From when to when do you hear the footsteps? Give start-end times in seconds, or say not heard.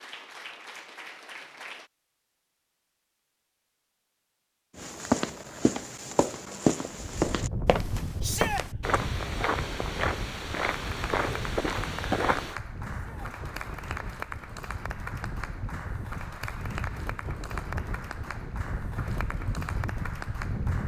4.8-12.6.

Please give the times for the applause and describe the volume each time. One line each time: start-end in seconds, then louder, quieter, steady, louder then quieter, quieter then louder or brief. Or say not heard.
0.0-1.9 brief
10.7-20.8 steady.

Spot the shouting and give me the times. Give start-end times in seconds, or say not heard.
8.2-8.7, 12.9-13.3.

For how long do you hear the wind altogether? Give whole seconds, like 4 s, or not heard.
14 s.